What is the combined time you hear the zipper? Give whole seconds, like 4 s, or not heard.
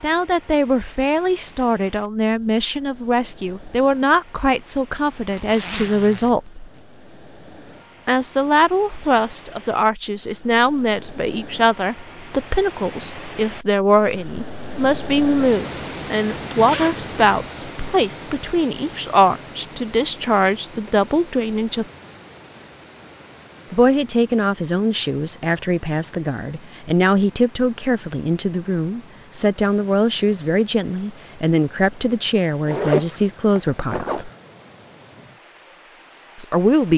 4 s.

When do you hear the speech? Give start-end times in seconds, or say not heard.
0.0-6.7, 8.1-21.9, 23.7-34.3, 36.4-36.9.